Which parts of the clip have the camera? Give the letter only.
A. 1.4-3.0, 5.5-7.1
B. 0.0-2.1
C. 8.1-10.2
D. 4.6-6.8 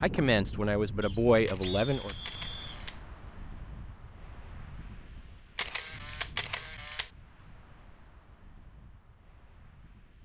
A.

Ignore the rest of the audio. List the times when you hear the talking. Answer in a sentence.
You can hear the talking from 0.0 to 2.1 s.